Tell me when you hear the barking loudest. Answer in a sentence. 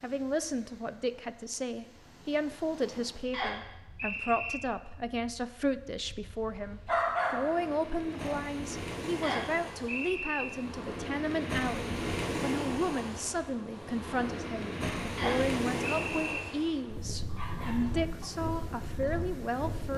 The volume of the barking peaks at 7 seconds.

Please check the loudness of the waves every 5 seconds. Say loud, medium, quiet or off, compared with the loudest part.
quiet, medium, loud, loud.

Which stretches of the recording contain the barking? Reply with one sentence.
The barking can be heard from 6.8 to 8.4 s and from 17.2 to 18.3 s.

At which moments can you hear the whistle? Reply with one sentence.
The whistle can be heard from 3.3 to 4.6 s, from 9.2 to 10.4 s and from 15.2 to 16.4 s.